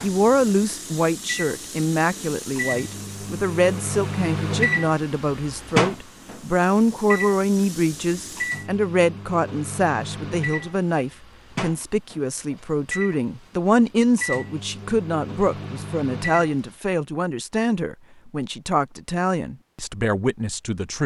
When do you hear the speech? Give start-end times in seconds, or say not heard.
0.0-21.0.